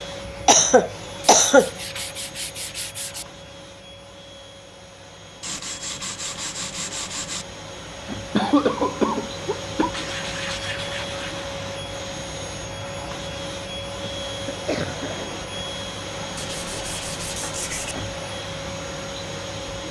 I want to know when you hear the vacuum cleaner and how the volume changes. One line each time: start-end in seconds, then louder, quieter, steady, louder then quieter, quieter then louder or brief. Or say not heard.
0.0-19.8 louder.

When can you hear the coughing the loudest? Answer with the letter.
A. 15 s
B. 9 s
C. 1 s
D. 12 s
C.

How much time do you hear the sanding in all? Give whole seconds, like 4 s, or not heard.
7 s.